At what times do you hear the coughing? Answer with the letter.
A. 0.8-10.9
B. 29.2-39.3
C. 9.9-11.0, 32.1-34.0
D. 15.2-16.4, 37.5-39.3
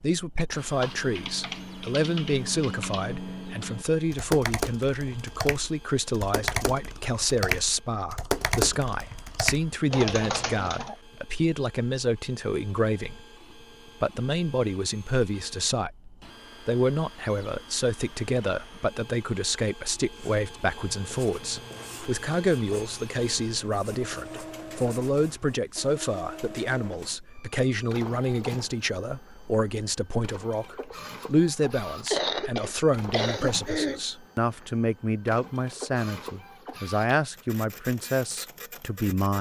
C.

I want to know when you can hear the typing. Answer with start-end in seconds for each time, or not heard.
0.8-10.9.